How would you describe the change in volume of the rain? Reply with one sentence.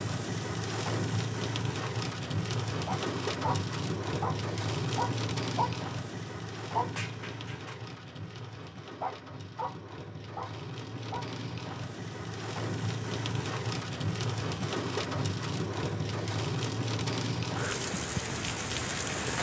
The loudness of the rain goes down, then up.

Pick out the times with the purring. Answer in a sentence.
You can't hear the purring here.